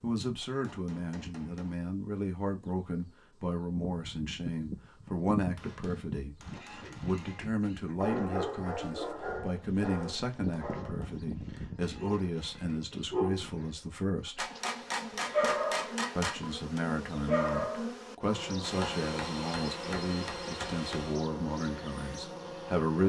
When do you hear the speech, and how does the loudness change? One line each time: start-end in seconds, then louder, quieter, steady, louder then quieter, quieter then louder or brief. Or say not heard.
0.0-14.4 steady
16.1-23.0 steady.